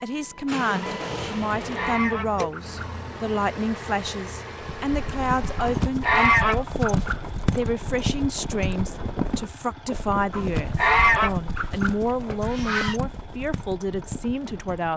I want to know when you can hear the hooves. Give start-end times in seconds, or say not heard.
4.8-14.9.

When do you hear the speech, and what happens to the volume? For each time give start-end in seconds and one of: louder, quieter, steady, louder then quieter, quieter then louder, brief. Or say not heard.
0.0-14.9 steady.